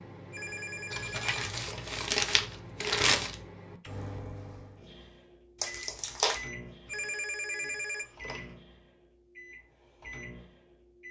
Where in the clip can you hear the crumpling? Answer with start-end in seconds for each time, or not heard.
0.9-3.4, 5.6-6.4.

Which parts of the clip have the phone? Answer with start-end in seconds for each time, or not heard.
0.3-1.9, 6.8-8.6.